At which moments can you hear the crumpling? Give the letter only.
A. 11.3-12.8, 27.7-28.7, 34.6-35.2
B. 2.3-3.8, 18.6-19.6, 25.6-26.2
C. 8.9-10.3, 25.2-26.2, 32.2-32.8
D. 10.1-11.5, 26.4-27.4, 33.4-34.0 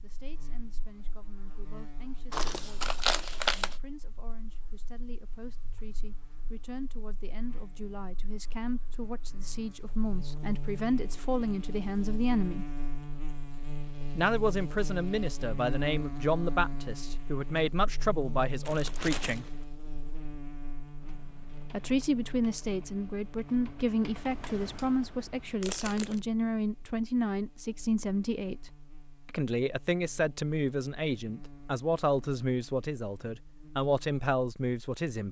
B.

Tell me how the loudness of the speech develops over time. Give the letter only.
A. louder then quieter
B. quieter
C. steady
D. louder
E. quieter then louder
D.